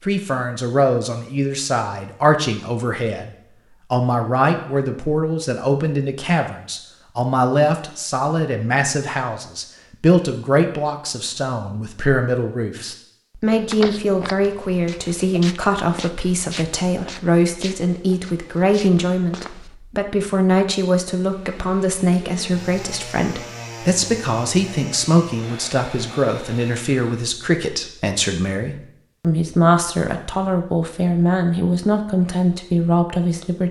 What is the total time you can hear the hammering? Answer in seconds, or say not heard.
not heard.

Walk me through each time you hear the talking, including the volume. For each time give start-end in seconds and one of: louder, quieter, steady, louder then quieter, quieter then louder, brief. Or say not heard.
0.0-33.6 steady.